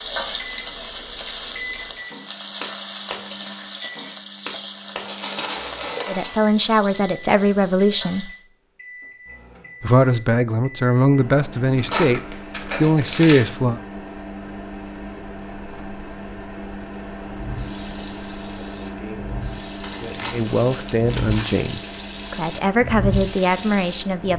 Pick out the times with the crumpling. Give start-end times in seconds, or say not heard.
5.0-6.3, 11.8-13.4, 19.8-21.8.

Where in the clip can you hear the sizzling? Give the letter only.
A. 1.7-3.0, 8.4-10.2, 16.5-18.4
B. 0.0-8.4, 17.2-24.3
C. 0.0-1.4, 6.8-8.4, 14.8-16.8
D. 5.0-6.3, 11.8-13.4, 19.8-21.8
B.